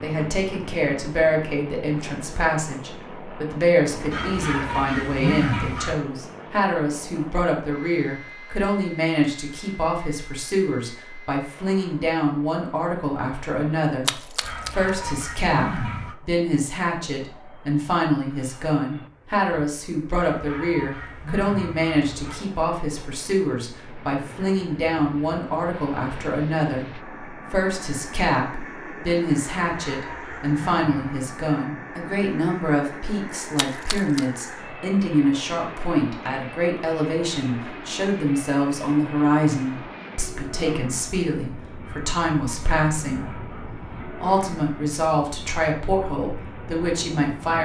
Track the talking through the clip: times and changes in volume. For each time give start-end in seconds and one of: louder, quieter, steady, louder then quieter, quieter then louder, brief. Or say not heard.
0.0-47.6 steady.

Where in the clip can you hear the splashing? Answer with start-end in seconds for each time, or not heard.
14.1-14.8, 33.5-34.5.